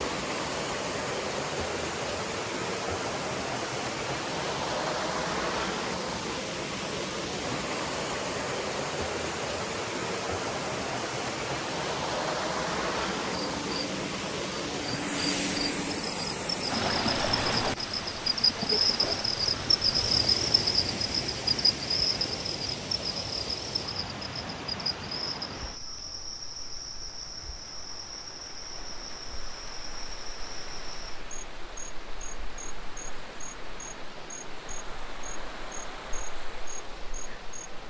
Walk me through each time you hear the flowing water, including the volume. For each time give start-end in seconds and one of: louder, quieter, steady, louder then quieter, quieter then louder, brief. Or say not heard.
0.0-37.8 quieter.